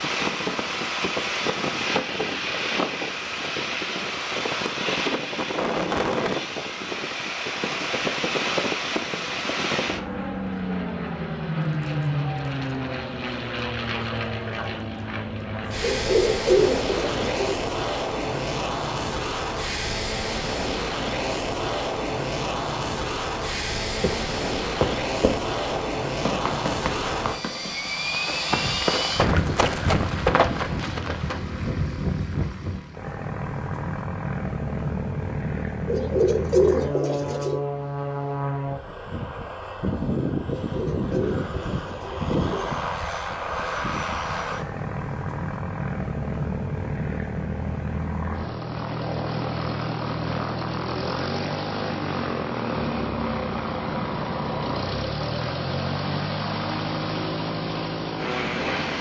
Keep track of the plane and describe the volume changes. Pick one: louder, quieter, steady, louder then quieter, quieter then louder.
steady.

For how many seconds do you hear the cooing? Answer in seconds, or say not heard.
6 s.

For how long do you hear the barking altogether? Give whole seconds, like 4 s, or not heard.
not heard.